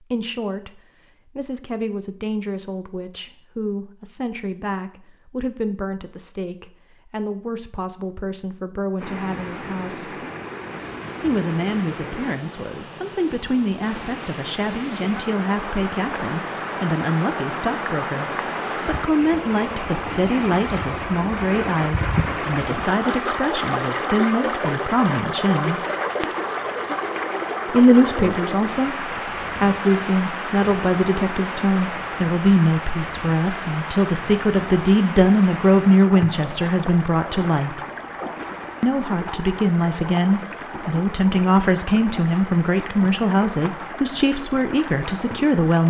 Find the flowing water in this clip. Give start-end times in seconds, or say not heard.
9.0-45.8.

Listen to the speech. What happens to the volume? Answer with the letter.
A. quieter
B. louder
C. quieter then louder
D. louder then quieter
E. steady
B.